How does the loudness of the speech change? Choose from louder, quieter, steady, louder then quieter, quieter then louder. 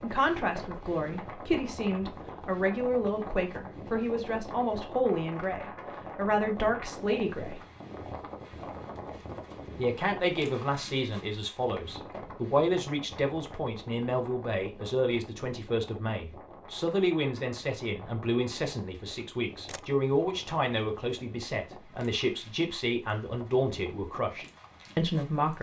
steady.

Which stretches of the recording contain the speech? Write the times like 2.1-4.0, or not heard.
0.0-7.6, 9.8-25.5.